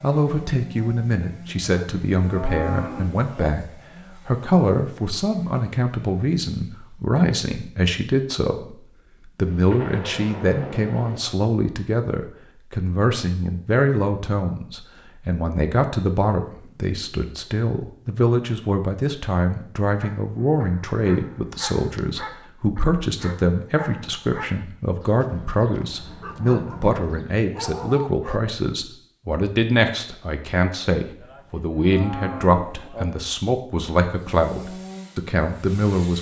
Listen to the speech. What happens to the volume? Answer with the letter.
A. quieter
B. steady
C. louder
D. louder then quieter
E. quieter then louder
B.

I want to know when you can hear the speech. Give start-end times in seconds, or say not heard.
0.0-36.1.